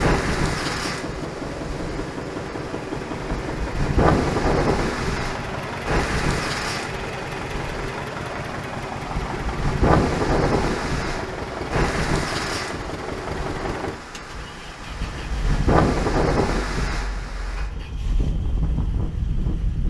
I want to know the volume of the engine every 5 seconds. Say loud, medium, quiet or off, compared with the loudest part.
loud, loud, loud, quiet.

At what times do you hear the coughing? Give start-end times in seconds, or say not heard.
not heard.